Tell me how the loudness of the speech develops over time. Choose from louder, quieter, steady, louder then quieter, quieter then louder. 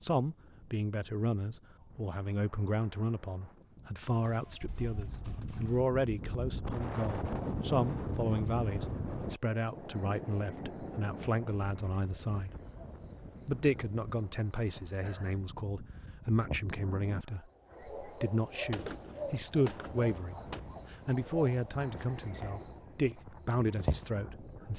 steady.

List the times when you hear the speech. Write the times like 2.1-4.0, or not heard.
0.0-12.6, 13.4-24.7.